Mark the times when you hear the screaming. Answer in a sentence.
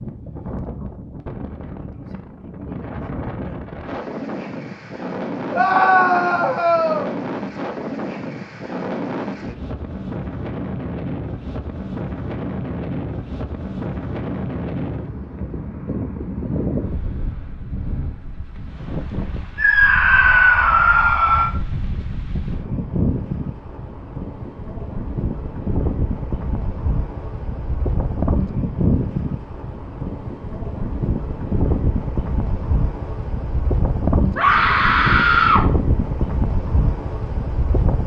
The screaming can be heard from 5.5 to 7.1 s, from 19.6 to 21.5 s and from 34.4 to 35.6 s.